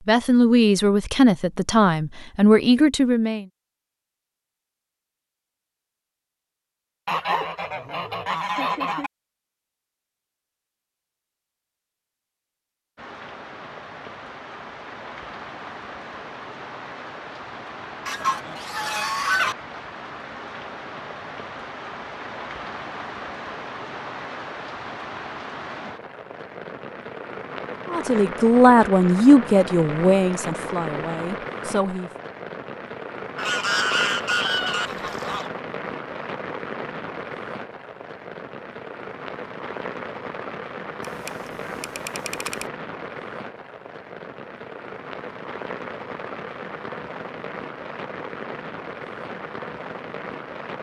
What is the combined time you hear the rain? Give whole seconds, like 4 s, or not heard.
38 s.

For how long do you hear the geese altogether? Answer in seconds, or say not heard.
7 s.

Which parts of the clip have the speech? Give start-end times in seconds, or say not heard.
0.1-3.5, 27.9-32.1.